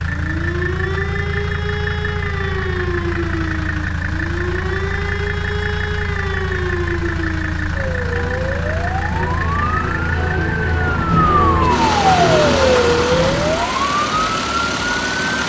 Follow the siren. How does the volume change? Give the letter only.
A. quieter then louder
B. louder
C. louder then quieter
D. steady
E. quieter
B.